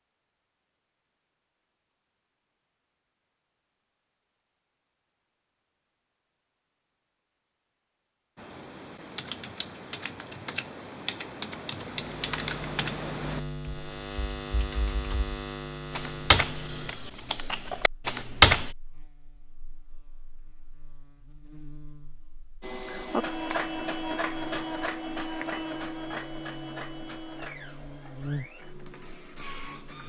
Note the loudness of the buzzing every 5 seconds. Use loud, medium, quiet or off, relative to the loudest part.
off, off, loud, loud, quiet, medium.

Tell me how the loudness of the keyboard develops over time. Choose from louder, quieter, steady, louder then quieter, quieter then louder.
louder.